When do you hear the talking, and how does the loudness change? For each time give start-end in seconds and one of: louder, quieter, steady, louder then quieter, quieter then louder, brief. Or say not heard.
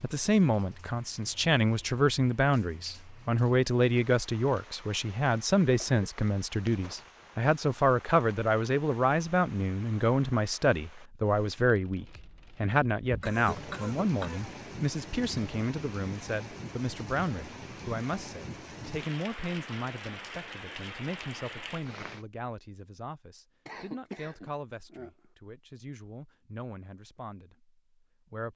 0.0-28.5 quieter.